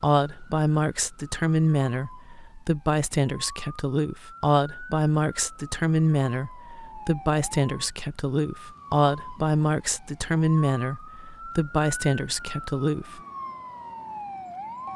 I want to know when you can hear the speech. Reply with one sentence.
You can hear the speech from 0.0 to 13.2 s.